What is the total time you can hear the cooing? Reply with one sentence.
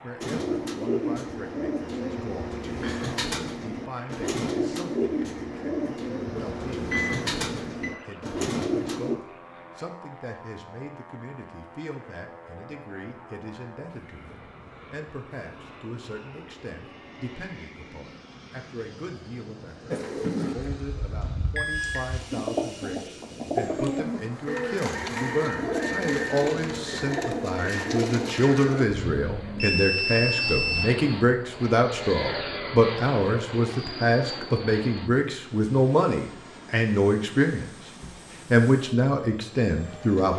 You can hear the cooing for 18 seconds altogether.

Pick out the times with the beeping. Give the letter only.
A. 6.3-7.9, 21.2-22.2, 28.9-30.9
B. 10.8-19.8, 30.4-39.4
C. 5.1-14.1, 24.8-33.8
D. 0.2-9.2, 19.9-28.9
A.